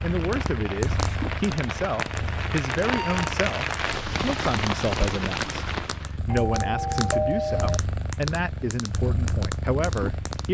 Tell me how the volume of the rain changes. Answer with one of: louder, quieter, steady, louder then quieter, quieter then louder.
louder.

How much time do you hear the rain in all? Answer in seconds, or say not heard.
6 s.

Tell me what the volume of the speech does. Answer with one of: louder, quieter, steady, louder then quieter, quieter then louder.
steady.